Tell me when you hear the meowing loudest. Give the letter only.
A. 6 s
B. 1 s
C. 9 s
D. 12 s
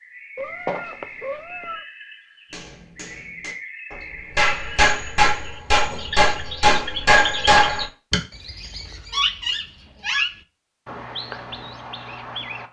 B.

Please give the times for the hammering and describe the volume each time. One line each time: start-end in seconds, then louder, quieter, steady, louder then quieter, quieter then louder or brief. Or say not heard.
2.5-8.2 louder.